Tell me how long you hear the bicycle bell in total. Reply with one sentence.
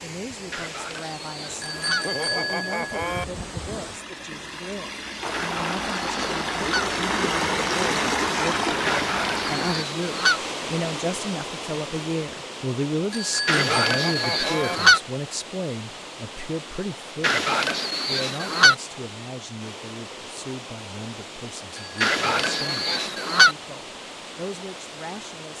The bicycle bell can be heard for 5 seconds in total.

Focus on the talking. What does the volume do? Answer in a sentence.
The volume of the talking goes up, then down.